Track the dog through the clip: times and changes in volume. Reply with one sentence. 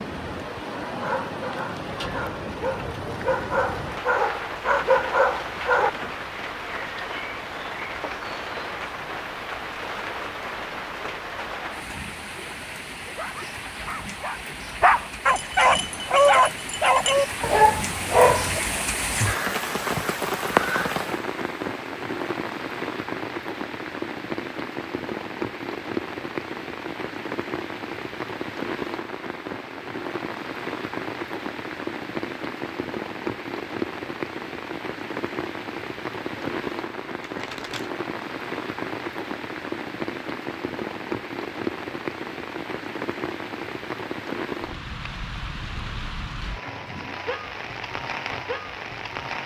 The dog can be heard from 0.8 to 5.9 s, getting louder; and from 13.1 to 18.6 s, getting louder.